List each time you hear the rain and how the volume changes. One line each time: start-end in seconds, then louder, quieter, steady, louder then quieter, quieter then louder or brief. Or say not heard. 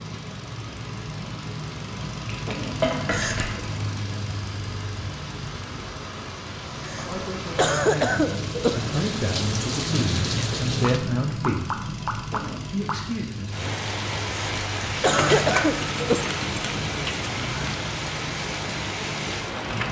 0.0-19.8 louder.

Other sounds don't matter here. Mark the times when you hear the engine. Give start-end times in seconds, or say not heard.
0.0-19.8.